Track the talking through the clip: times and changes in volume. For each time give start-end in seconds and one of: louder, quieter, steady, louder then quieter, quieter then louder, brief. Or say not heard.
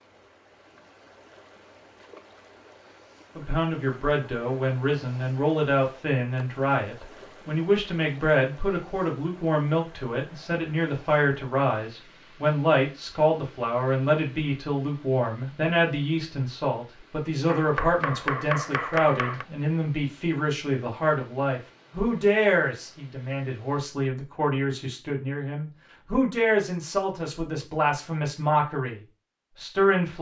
3.4-30.1 steady.